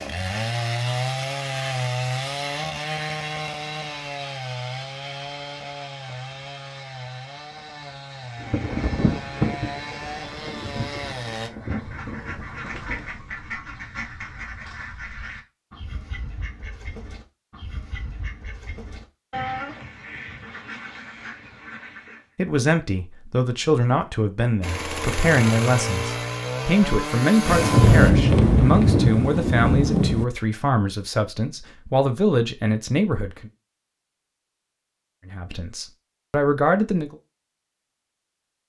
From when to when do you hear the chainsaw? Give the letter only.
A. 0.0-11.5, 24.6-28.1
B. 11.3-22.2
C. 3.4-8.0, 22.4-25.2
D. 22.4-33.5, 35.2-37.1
A.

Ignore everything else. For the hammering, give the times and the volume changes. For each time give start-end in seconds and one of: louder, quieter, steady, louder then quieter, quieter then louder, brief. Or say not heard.
not heard.